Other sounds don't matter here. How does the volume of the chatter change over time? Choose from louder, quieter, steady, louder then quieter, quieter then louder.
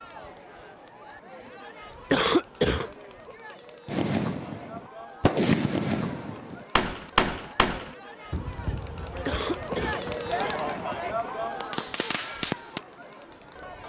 louder.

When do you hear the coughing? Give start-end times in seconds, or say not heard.
2.1-2.9, 9.2-10.1.